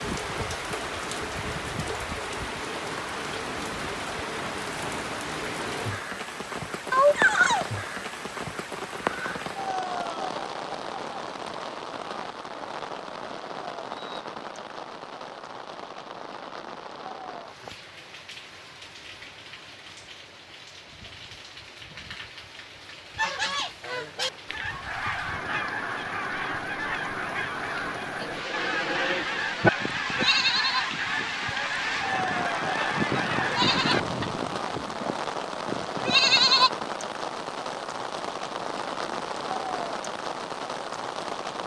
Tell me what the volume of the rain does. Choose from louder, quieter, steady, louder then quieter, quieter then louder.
quieter then louder.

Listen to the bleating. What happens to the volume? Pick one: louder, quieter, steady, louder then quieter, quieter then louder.
quieter then louder.